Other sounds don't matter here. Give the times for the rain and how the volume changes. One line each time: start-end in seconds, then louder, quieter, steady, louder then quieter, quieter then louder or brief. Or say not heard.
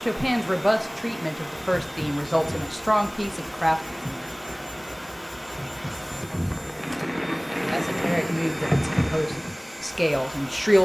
0.0-9.6 louder.